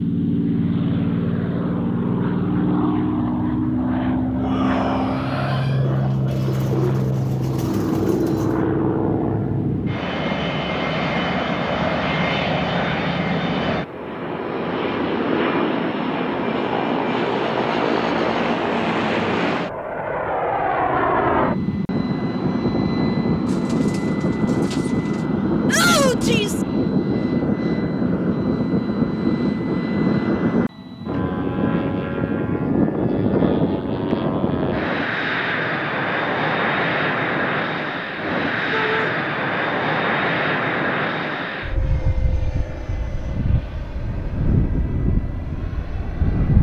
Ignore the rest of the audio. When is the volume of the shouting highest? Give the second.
26 s.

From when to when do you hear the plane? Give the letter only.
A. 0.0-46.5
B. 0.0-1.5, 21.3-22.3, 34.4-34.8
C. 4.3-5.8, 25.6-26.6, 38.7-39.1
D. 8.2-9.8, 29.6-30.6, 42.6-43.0
A.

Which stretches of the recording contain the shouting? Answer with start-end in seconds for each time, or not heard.
4.3-5.8, 25.6-26.6, 38.7-39.1.